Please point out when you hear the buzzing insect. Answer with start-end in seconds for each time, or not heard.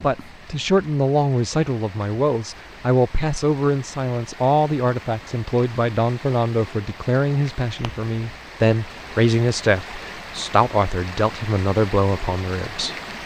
not heard.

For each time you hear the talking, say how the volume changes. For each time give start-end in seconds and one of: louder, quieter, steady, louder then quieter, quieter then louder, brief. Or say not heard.
0.0-12.9 steady.